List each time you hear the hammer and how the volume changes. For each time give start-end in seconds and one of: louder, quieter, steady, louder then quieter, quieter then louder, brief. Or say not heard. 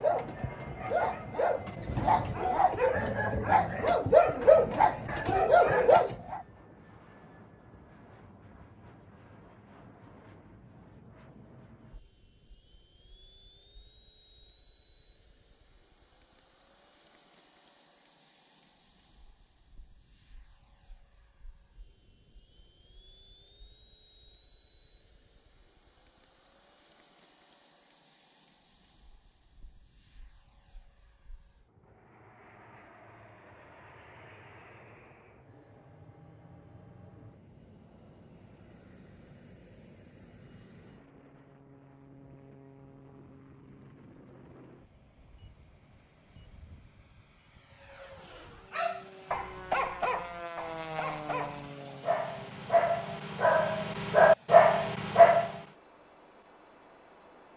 not heard.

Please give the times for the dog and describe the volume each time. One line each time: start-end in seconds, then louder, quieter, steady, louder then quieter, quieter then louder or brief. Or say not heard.
0.0-6.4 louder
48.7-55.6 quieter then louder.